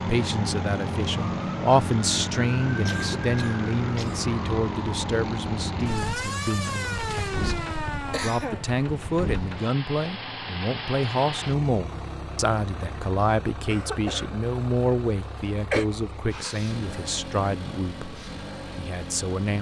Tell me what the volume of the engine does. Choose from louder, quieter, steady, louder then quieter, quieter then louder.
quieter.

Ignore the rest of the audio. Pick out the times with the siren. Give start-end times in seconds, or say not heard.
0.0-8.8.